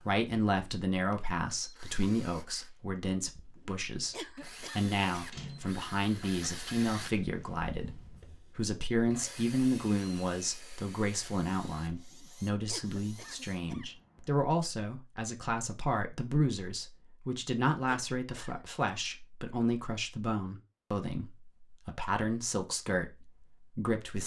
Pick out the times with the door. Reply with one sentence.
You can hear the door from 5.3 to 5.8 s.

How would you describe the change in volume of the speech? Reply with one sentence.
The loudness of the speech stays about the same.